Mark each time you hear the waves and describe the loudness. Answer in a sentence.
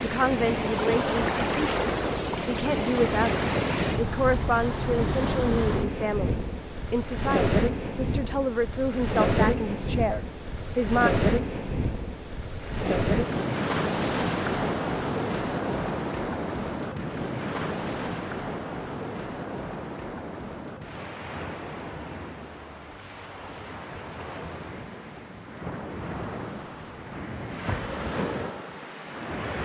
The waves can be heard from 0.0 to 29.6 s, getting quieter.